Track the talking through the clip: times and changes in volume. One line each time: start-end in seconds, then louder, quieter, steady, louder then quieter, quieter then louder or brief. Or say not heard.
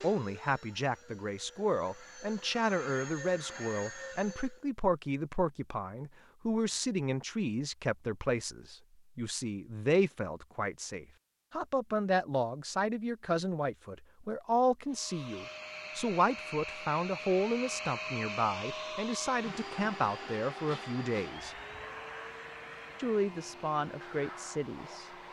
0.0-21.6 steady
22.9-25.1 brief.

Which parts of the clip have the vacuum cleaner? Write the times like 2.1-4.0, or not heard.
0.0-4.7, 14.8-25.2.